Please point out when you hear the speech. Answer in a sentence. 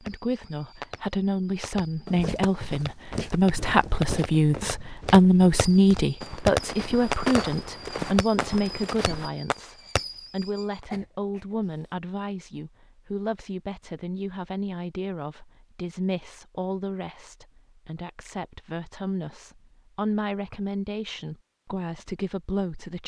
The speech can be heard from 0.0 to 23.0 s.